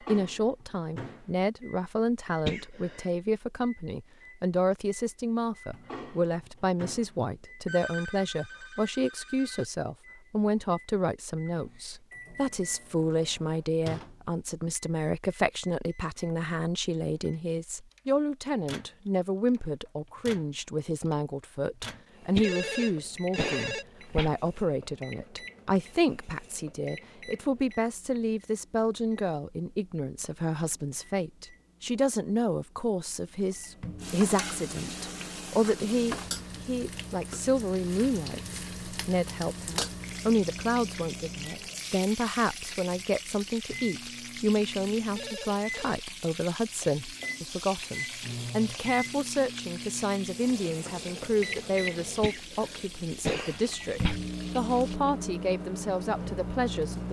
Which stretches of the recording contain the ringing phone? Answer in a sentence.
You can hear the ringing phone from 7.7 to 9.7 s, from 22.4 to 23.9 s and from 45.1 to 46.0 s.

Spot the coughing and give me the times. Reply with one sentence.
You can hear the coughing from 2.5 to 3.0 s, from 22.4 to 24.3 s and from 52.2 to 54.2 s.